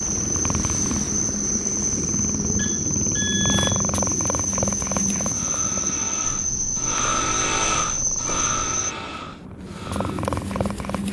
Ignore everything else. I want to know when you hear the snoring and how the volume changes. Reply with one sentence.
You can hear the snoring from 5.2 to 10.2 s, getting louder then quieter.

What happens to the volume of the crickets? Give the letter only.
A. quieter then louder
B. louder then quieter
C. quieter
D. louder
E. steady
E.